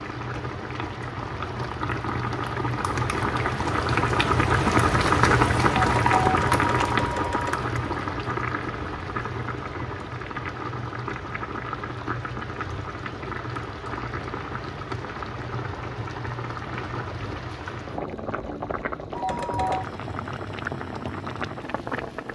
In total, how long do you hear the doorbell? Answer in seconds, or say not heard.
3 s.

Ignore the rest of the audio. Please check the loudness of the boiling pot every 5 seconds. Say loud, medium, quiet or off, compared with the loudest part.
loud, loud, medium, medium, medium.